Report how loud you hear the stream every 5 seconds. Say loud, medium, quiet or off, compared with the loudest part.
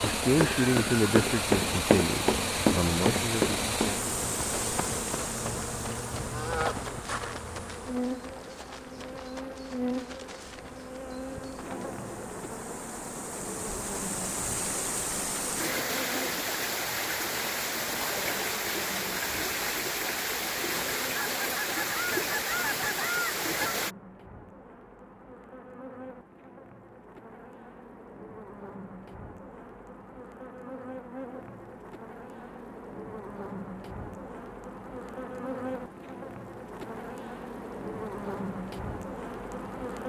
loud, medium, medium, loud, loud, off, off, off.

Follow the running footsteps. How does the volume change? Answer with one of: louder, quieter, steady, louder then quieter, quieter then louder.
quieter.